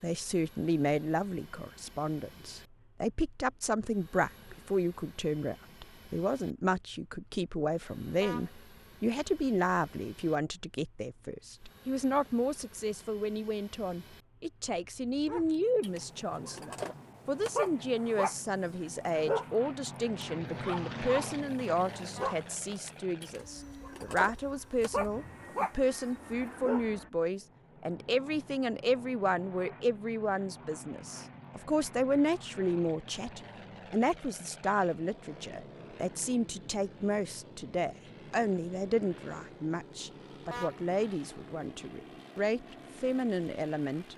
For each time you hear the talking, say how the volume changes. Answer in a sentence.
You can hear the talking from 0.0 to 44.1 s, at a steady volume.